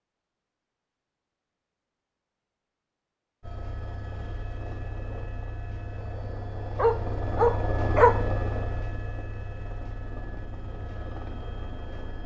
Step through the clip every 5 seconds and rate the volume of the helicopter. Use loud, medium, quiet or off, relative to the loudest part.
medium, loud, medium.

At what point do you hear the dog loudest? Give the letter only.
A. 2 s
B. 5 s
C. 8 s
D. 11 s
C.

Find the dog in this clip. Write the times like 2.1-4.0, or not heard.
6.8-8.2.